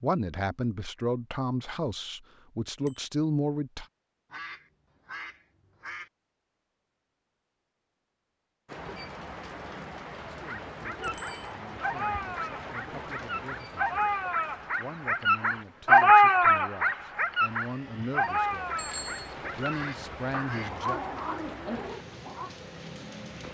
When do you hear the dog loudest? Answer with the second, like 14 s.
16 s.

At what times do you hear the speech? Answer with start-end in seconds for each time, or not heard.
0.0-3.9, 10.2-18.8, 19.4-21.0.